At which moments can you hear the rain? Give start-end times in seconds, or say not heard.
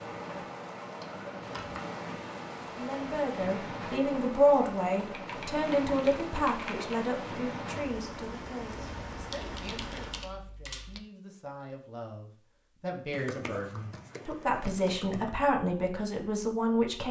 0.0-10.3.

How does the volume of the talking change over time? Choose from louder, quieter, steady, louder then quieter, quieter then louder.
quieter then louder.